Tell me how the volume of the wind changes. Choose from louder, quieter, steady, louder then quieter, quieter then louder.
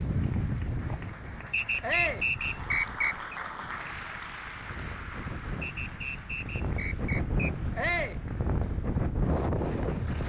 quieter then louder.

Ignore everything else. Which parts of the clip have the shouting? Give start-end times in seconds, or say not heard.
1.8-2.3, 7.8-8.2.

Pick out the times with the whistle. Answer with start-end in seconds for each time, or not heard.
1.5-3.4, 5.6-7.5.